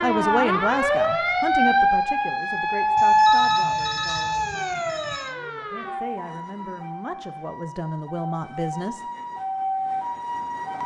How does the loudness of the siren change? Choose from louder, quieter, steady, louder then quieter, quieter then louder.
quieter then louder.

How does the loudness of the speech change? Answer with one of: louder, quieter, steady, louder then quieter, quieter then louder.
quieter then louder.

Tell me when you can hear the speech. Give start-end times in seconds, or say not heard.
0.0-9.0.